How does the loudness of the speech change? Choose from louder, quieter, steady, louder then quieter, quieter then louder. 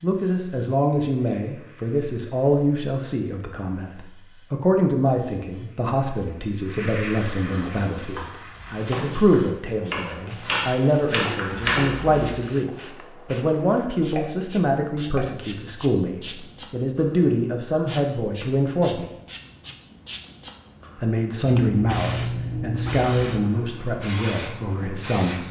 steady.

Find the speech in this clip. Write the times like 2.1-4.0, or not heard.
0.0-19.1, 20.9-25.4.